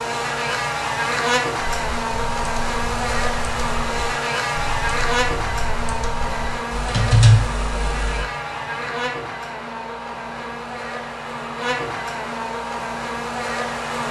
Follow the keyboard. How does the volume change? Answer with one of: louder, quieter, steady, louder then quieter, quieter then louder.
louder.